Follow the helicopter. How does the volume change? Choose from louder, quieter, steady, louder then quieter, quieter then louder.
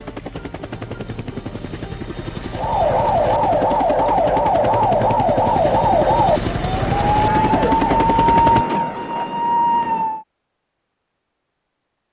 louder.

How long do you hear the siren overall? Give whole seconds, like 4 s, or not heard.
8 s.